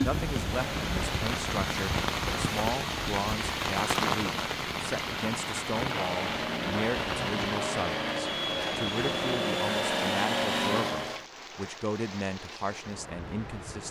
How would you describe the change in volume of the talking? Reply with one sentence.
The volume of the talking stays about the same.